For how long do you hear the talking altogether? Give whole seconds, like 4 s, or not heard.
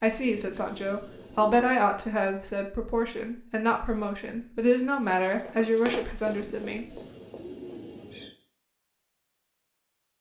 7 s.